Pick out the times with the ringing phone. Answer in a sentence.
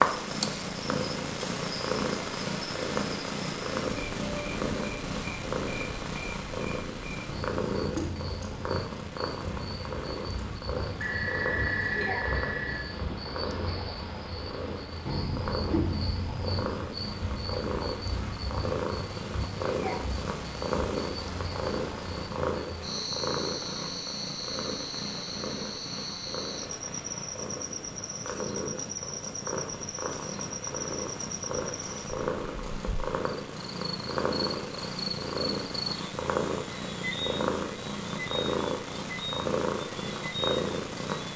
You can hear the ringing phone from 10.9 to 12.8 s.